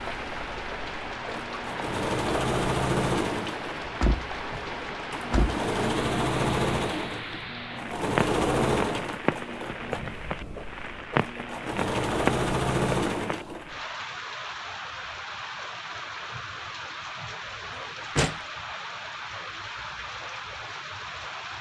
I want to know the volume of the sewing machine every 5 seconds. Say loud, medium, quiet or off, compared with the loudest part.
loud, loud, loud, off, off.